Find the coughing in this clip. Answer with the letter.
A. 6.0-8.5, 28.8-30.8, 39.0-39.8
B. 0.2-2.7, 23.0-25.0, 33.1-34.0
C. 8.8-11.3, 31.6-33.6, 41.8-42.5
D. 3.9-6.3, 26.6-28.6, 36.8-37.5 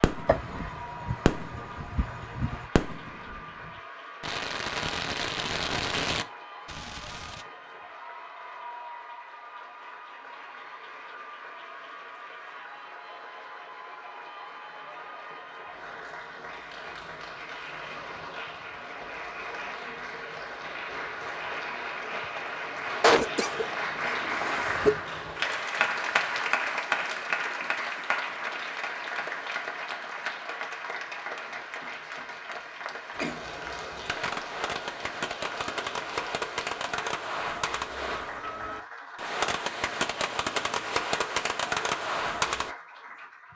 B.